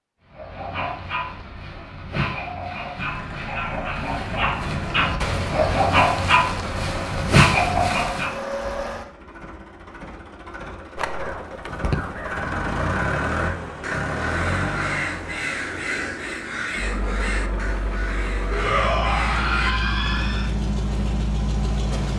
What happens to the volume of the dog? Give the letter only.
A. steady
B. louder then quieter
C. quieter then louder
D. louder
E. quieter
D.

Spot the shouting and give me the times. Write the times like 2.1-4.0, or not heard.
18.5-20.5.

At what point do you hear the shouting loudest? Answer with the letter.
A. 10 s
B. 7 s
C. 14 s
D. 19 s
D.